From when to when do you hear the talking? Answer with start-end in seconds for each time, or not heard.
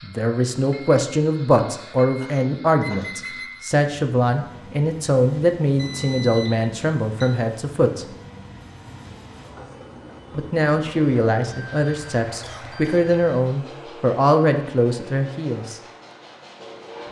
0.0-8.1, 10.3-15.8.